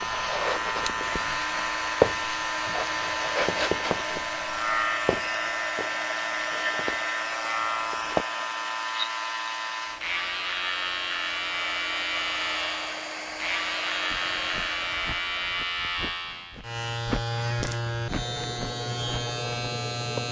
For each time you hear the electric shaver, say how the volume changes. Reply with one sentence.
You can hear the electric shaver from 0.0 to 20.2 s, at a steady volume.